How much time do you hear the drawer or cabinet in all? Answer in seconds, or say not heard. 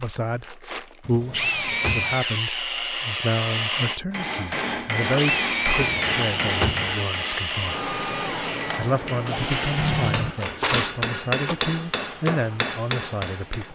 4 s.